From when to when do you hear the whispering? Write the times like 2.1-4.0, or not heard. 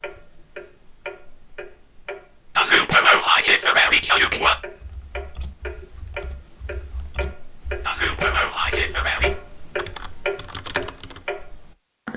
2.5-4.5, 7.8-9.3.